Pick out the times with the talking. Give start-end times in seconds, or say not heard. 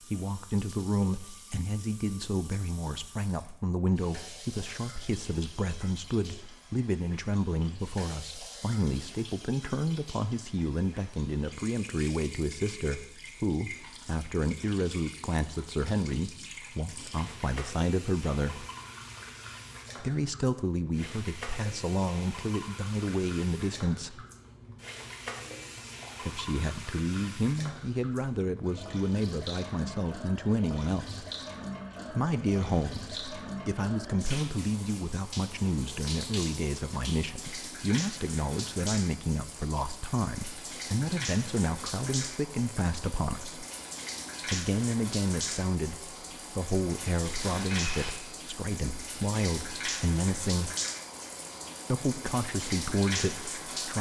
0.1-18.6, 20.0-24.2, 26.2-31.2, 32.1-43.6, 44.5-50.7, 51.9-53.9.